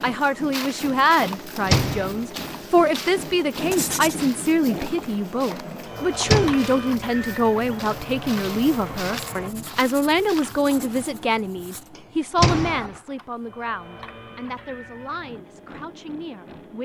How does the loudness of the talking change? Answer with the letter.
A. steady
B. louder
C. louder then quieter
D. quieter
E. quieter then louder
D.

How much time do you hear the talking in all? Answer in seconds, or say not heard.
17 s.